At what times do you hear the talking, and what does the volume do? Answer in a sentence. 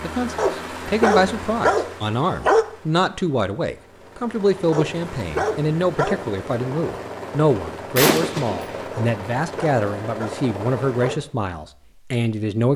The talking can be heard from 0.0 to 12.7 s, at a steady volume.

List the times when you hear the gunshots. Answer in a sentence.
The gunshots can be heard from 8.0 to 8.9 s.